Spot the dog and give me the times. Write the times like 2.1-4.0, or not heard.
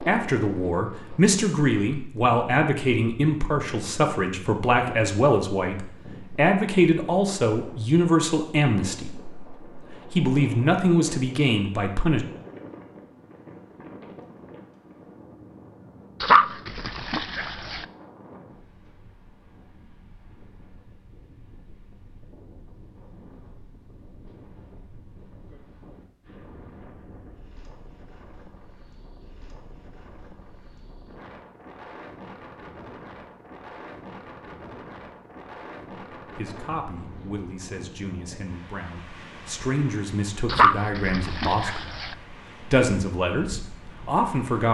16.2-17.9, 40.5-42.1.